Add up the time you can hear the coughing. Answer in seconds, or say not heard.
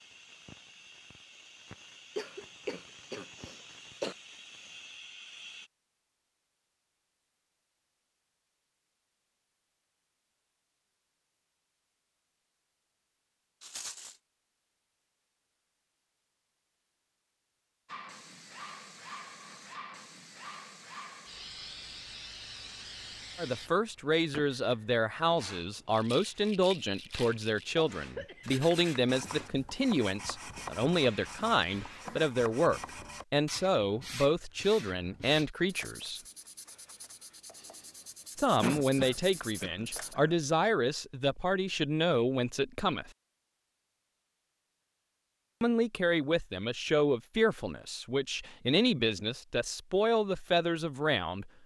5 s.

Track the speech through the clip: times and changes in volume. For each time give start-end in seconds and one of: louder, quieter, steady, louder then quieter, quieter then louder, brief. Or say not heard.
23.4-36.2 steady
38.4-43.1 steady
45.6-51.5 steady.